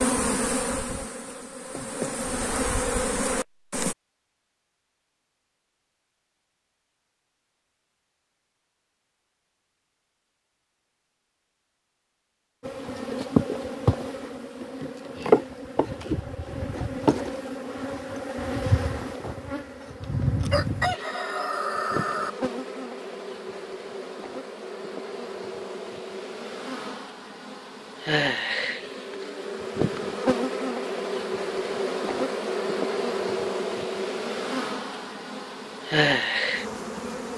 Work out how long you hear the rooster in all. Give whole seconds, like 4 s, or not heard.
2 s.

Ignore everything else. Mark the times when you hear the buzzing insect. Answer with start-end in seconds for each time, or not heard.
0.0-4.0, 12.6-37.3.